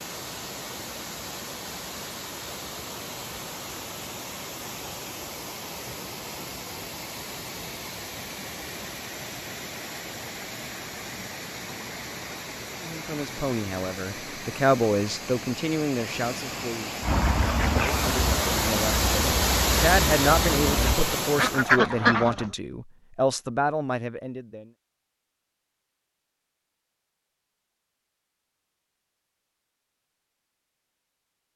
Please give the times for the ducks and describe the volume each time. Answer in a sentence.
You can hear the ducks from 17.0 to 22.5 s, getting quieter then louder.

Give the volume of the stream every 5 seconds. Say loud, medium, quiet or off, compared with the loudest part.
medium, medium, medium, loud, loud, off, off.